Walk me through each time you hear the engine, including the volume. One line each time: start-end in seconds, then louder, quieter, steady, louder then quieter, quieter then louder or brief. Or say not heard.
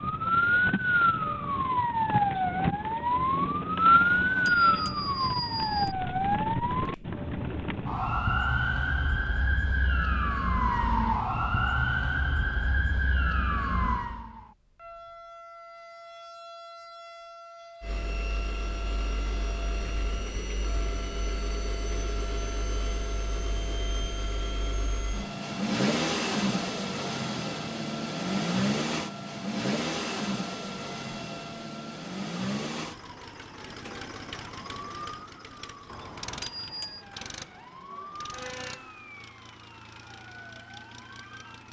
17.8-41.6 louder then quieter.